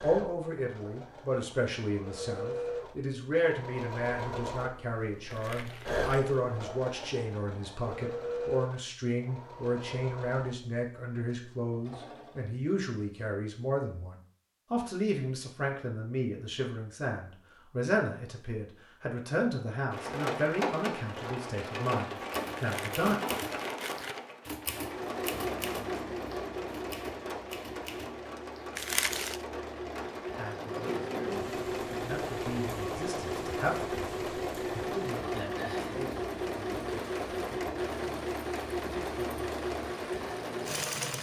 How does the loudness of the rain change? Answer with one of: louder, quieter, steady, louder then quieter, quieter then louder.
quieter.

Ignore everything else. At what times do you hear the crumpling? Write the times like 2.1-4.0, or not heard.
5.3-6.4, 22.6-24.2, 28.8-29.4.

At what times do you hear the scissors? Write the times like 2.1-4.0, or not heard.
not heard.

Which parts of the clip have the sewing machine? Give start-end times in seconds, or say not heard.
0.0-12.5, 24.7-41.1.